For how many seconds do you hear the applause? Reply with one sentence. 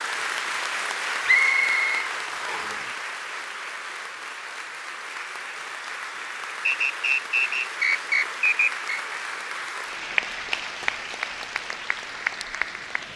You can hear the applause for 13 seconds altogether.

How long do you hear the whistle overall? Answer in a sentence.
The whistle can be heard for 4 seconds in total.